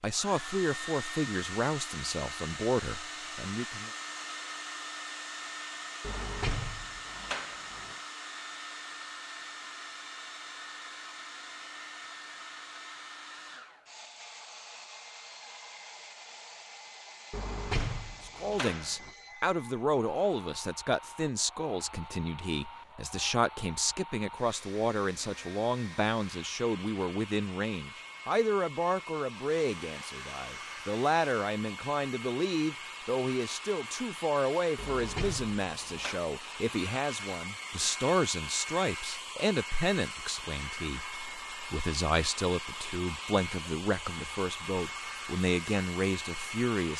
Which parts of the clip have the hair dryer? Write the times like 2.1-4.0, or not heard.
0.0-46.9.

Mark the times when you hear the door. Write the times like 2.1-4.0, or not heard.
6.0-8.0, 17.3-19.1, 34.8-36.2.